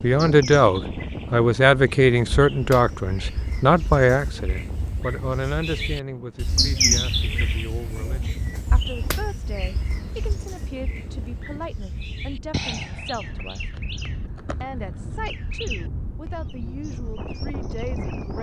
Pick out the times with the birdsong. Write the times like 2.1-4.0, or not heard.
0.0-18.3.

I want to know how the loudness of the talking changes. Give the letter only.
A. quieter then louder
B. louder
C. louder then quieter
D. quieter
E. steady
D.